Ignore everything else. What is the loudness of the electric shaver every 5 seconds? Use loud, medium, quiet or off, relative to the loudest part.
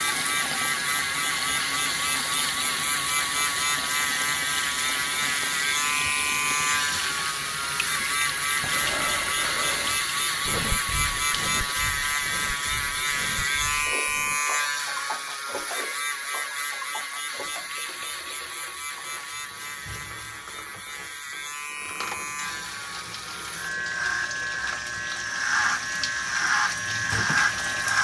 loud, loud, loud, medium, medium, loud.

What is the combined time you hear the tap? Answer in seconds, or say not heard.
28 s.